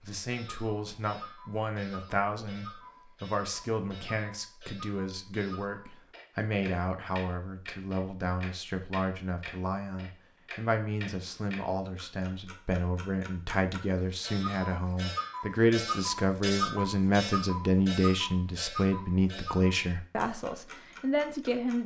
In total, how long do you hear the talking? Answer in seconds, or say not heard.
22 s.